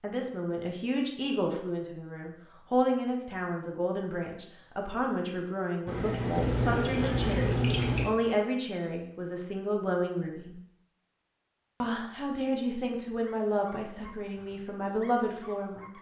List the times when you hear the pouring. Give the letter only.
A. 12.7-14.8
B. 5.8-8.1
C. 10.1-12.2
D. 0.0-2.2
B.